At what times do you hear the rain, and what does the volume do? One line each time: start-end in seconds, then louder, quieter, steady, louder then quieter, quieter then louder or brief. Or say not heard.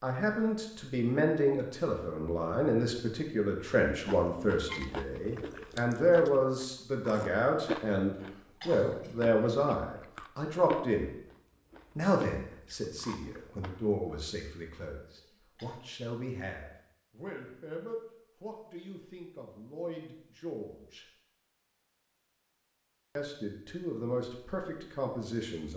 not heard.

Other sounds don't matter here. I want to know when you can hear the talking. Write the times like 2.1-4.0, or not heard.
0.0-11.1, 11.9-21.1, 23.1-25.7.